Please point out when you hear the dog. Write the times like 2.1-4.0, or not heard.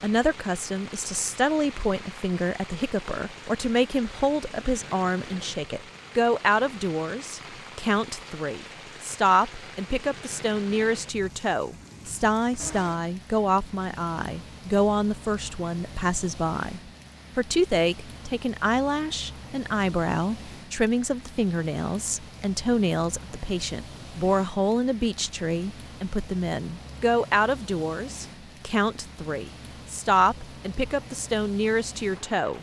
not heard.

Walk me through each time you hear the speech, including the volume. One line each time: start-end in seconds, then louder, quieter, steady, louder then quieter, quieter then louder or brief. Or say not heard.
0.0-32.5 steady.